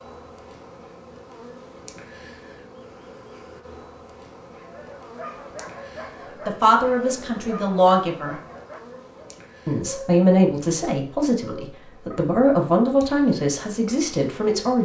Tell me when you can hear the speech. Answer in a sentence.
The speech can be heard from 6.5 to 8.3 s and from 9.7 to 14.8 s.